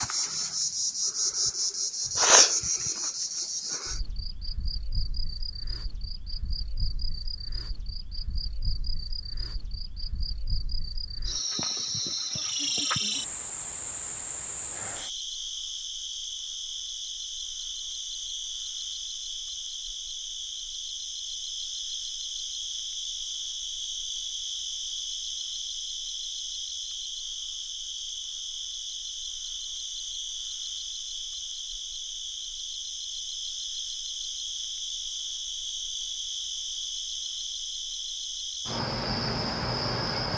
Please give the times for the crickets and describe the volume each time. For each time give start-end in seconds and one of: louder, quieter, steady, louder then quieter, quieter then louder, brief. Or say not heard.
0.0-40.3 steady.